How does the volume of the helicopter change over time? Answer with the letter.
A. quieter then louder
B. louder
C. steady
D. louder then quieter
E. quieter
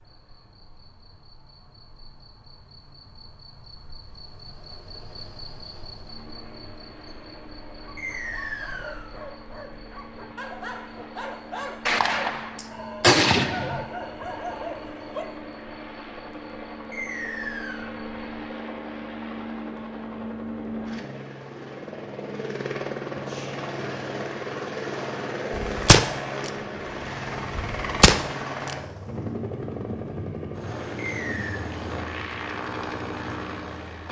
B.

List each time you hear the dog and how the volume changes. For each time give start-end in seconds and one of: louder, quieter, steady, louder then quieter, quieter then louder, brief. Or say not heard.
7.7-15.2 louder.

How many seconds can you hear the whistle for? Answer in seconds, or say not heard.
3 s.